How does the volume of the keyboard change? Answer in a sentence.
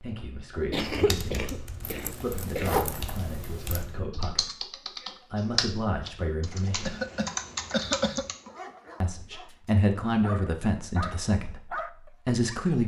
The loudness of the keyboard goes up.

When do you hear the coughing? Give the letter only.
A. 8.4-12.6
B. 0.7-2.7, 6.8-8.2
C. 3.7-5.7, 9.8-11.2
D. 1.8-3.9
B.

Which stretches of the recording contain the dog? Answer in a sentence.
The dog can be heard from 8.4 to 12.6 s.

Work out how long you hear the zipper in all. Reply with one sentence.
The zipper can be heard for 2 seconds in total.